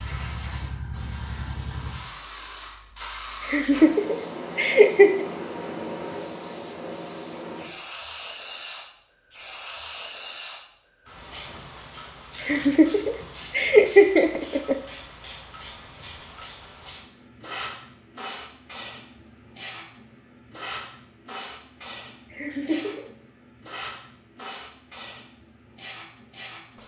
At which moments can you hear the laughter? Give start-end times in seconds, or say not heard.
3.5-5.2, 12.4-14.8, 22.3-23.1.